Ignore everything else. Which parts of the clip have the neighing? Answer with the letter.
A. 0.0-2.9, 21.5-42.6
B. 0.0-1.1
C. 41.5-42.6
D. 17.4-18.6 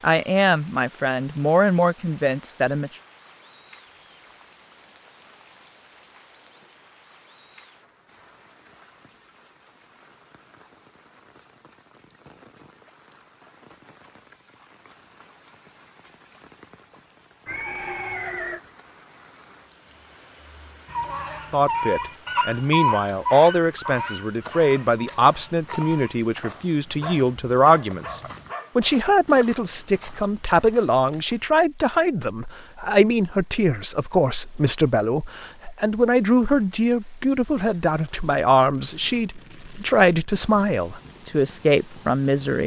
D.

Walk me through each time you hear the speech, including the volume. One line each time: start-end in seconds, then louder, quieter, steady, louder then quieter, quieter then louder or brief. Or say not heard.
0.0-2.9 brief
21.5-42.6 steady.